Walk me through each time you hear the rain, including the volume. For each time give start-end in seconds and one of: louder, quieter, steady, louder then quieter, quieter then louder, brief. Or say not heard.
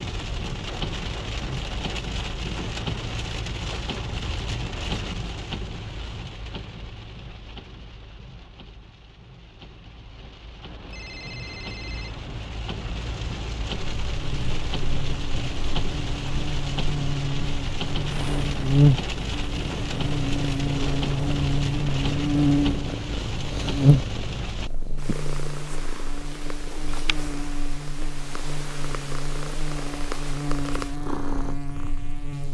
0.0-24.7 quieter then louder.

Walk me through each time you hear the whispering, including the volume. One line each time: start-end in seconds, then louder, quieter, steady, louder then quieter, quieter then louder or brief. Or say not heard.
not heard.